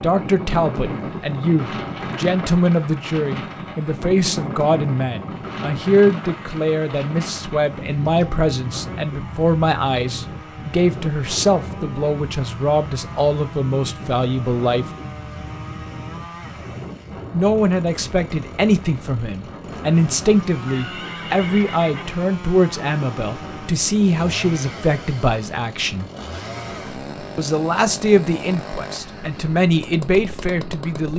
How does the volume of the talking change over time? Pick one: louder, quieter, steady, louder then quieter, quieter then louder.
steady.